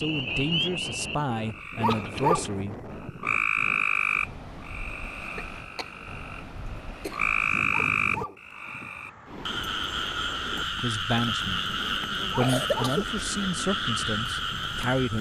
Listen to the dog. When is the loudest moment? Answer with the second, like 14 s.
2 s.